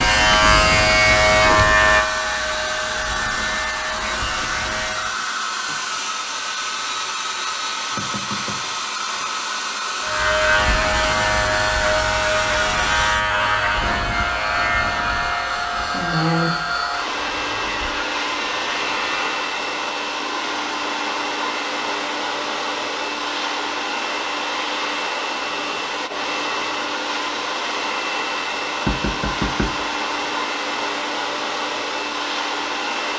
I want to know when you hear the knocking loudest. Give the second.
29 s.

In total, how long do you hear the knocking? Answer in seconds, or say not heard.
3 s.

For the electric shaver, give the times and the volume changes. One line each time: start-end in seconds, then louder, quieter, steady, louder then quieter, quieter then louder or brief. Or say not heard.
0.0-5.2 quieter
10.0-19.4 quieter.